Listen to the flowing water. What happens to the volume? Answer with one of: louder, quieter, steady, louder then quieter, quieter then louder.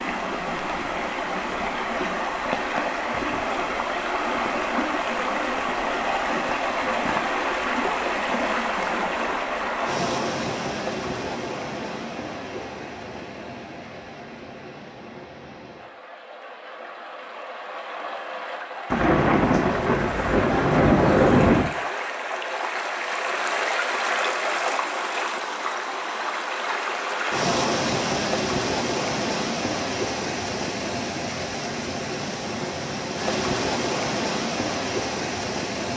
quieter then louder.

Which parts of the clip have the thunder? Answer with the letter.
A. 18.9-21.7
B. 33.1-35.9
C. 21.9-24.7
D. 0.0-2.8
A.